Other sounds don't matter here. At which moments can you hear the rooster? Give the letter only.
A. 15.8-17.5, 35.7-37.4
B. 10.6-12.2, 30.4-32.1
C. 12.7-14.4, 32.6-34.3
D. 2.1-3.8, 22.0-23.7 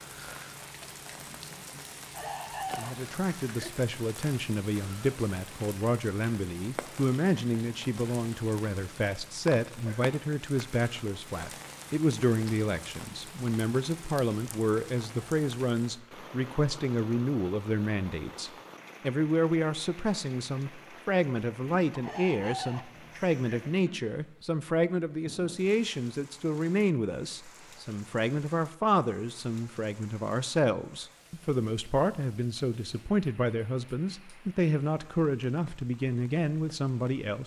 D.